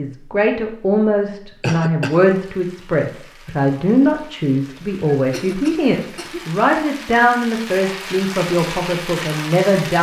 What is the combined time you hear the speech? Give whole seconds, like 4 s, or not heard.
10 s.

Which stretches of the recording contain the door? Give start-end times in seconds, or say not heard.
not heard.